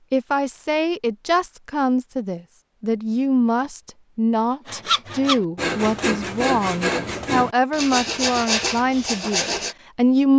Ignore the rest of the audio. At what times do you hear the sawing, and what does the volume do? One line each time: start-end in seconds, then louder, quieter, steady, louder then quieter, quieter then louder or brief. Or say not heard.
4.7-9.8 steady.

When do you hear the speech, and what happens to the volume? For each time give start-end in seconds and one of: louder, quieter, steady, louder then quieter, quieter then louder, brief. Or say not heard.
0.1-10.3 steady.